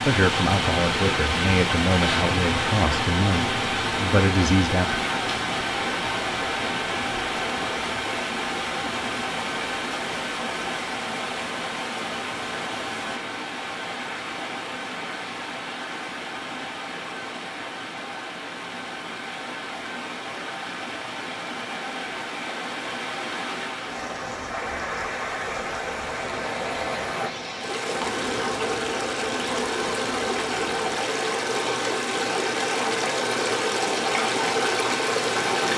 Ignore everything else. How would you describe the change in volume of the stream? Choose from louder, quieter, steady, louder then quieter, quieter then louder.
quieter then louder.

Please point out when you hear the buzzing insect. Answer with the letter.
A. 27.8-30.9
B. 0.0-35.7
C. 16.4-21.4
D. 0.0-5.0
A.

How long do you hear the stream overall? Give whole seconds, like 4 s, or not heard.
36 s.